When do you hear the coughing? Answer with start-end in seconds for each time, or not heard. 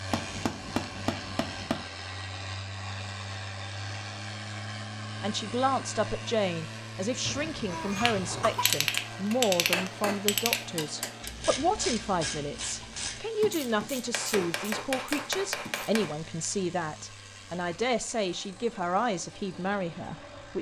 7.2-8.7.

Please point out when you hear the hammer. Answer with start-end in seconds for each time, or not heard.
0.1-1.9, 8.7-11.3, 14.1-16.1.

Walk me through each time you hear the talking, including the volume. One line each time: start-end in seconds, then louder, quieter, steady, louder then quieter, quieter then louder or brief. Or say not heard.
5.2-20.5 steady.